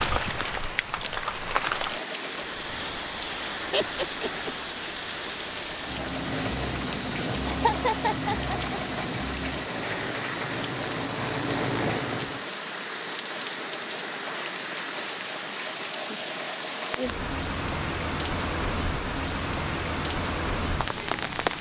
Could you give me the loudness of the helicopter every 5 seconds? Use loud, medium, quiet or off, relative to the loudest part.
medium, loud, loud, off, off.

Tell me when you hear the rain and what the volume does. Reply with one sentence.
You can hear the rain from 0.0 to 21.5 s, at a steady volume.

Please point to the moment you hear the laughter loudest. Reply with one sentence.
The volume of the laughter peaks at 8 seconds.